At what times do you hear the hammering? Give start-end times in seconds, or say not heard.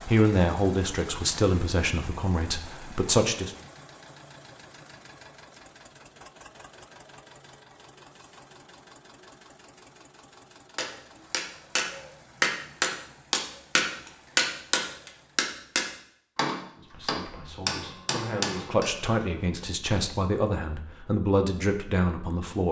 10.8-19.9.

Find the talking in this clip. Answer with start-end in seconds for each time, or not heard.
0.1-3.5, 16.8-22.6.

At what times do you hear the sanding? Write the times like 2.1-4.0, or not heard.
not heard.